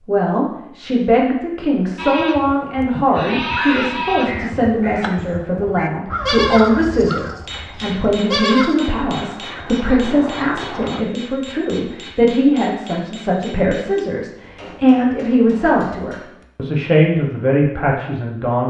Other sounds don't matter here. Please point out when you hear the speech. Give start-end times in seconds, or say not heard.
0.0-18.6.